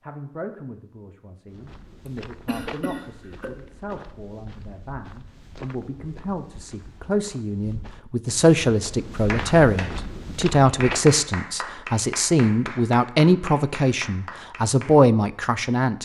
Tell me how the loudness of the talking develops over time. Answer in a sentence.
The volume of the talking goes up.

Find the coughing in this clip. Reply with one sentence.
The coughing can be heard from 2.0 to 3.5 s.